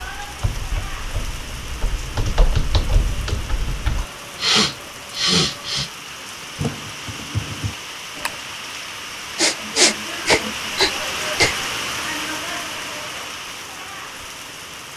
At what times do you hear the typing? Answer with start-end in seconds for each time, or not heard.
0.0-4.0, 6.5-8.3.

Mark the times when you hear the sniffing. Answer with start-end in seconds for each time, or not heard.
4.0-5.9, 9.3-11.7.